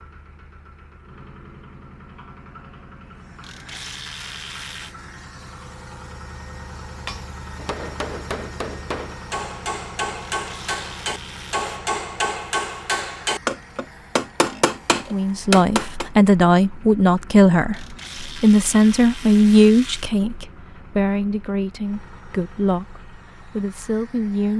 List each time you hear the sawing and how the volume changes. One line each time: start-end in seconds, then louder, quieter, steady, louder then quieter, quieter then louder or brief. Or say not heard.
not heard.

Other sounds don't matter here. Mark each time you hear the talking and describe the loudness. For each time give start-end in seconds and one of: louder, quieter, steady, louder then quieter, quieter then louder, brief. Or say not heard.
15.1-24.5 quieter.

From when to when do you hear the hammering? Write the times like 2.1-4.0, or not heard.
6.8-16.1.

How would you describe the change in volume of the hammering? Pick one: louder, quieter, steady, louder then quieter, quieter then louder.
louder.